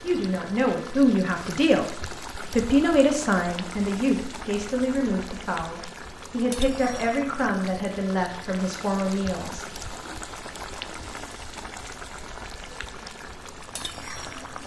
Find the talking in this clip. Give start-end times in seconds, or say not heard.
0.0-9.8.